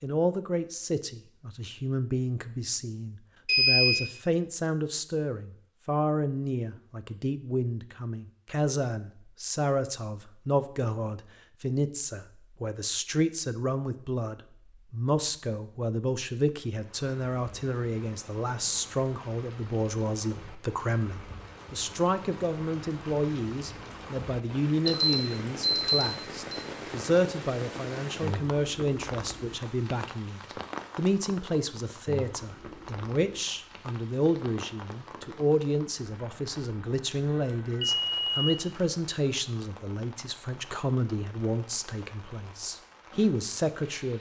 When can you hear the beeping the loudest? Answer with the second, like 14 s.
4 s.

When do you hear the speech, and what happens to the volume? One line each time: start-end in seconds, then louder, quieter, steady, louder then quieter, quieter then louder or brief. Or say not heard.
0.0-44.1 steady.